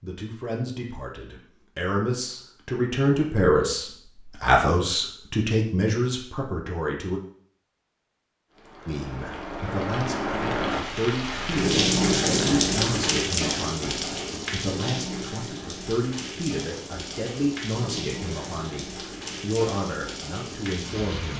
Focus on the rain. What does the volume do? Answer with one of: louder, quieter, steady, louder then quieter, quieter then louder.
louder then quieter.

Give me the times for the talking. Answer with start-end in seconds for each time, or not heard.
0.0-7.2, 8.8-21.3.